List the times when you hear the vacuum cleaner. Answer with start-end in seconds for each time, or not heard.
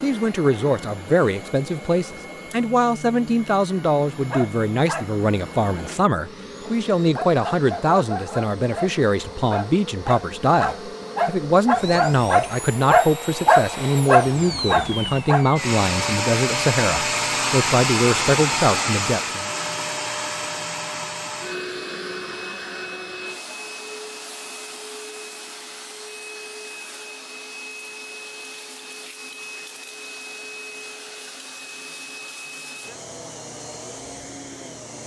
0.0-35.0.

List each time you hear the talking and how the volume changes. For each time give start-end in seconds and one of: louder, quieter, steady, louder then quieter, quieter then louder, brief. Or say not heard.
0.0-19.5 steady.